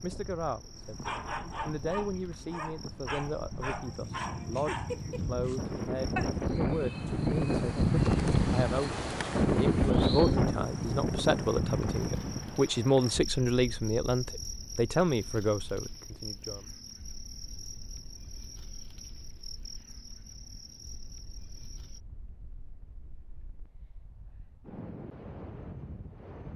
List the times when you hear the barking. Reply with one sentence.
You can hear the barking from 0.8 to 6.3 s.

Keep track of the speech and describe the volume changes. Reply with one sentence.
The volume of the speech goes up.